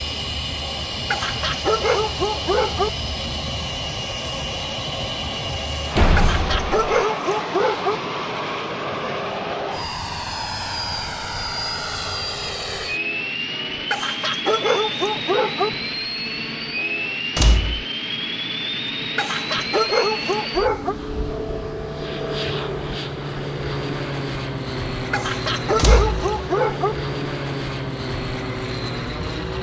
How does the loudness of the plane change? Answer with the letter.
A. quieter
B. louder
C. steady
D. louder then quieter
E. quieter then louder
C.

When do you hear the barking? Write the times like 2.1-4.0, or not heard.
1.1-2.9, 6.2-8.0, 13.9-15.7, 19.1-20.9, 25.1-26.9.